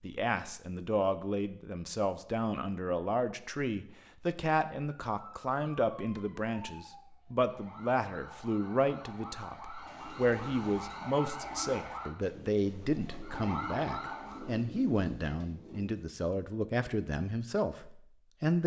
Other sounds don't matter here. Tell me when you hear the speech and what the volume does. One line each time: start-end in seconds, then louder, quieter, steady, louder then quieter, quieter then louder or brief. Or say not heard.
0.0-18.6 steady.